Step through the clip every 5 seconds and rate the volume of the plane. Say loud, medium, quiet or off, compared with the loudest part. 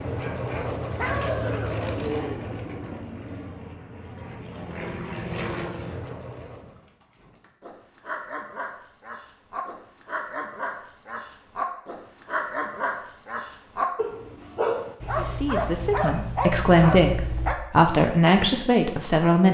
loud, loud, off, off.